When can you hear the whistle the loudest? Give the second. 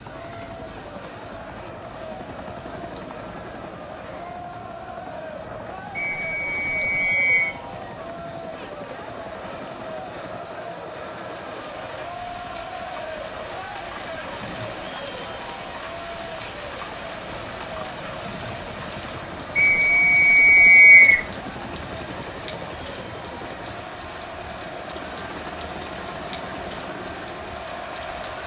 21 s.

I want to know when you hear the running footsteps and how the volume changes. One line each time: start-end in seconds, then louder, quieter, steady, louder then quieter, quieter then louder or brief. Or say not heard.
not heard.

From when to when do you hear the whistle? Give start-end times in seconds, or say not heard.
6.0-7.5, 19.6-21.2.